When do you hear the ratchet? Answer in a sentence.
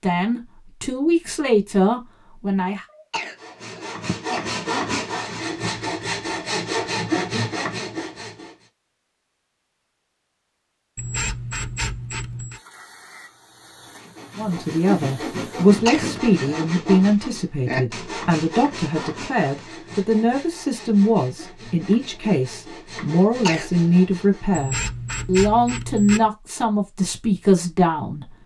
The ratchet can be heard from 10.9 to 12.6 s and from 24.5 to 26.3 s.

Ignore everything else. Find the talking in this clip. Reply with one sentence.
You can hear the talking from 0.0 to 2.9 s and from 14.3 to 28.3 s.